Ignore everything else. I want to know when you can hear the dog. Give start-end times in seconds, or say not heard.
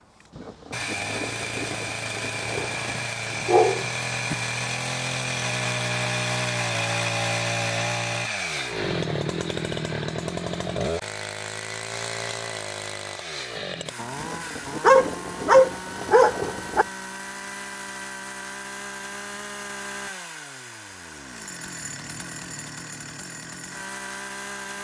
2.8-4.3, 14.8-16.9.